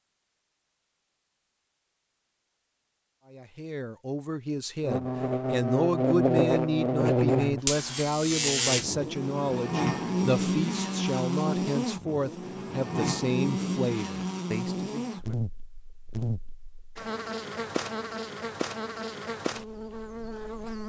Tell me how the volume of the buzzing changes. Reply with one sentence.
The volume of the buzzing goes down.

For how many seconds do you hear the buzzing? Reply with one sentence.
You can hear the buzzing for 16 seconds altogether.